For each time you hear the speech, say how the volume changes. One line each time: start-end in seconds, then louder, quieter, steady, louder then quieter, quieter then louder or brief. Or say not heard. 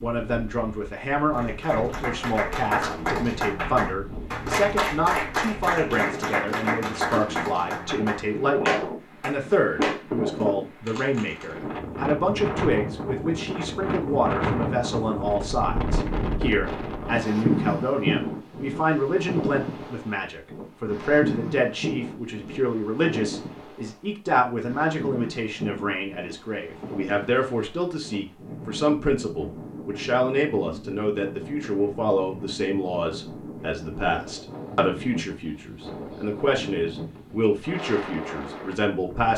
0.0-39.3 steady.